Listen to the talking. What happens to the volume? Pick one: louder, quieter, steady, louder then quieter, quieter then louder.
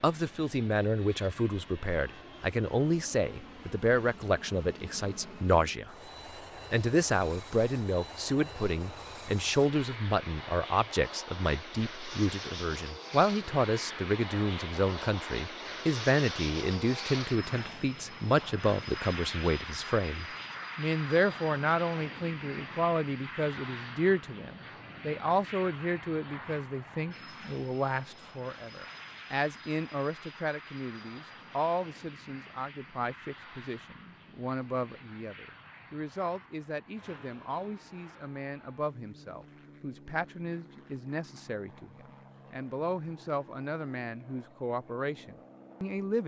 quieter.